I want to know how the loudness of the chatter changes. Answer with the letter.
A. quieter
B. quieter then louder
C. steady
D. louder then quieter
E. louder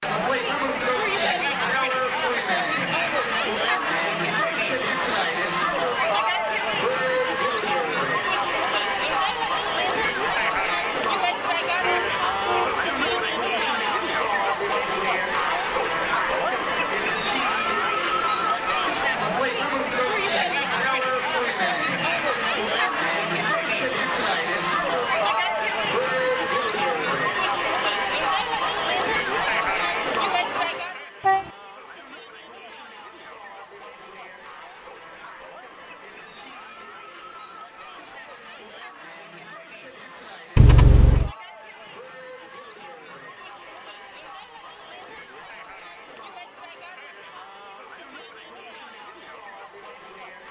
A.